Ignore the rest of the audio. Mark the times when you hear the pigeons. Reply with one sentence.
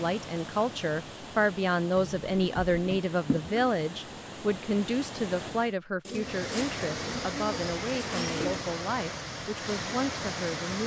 You can hear the pigeons from 1.9 to 3.7 s and from 6.0 to 8.7 s.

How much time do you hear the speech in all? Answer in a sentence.
You can hear the speech for 11 seconds altogether.